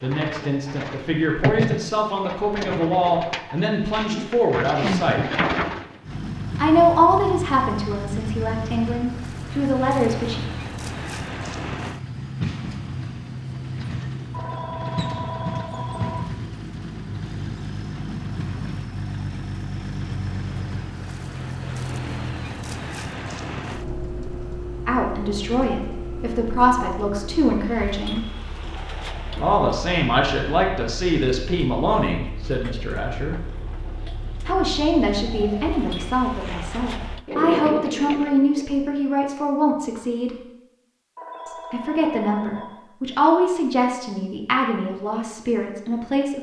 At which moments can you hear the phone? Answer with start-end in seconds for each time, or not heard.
14.3-16.3, 41.1-42.8.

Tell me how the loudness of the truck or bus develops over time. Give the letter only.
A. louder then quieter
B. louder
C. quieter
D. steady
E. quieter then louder
C.